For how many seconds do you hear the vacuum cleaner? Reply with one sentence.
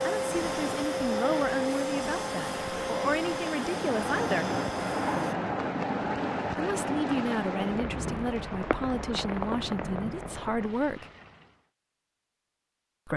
You can hear the vacuum cleaner for 5 seconds altogether.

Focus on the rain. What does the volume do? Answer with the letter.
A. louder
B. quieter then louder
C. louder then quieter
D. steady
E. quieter
C.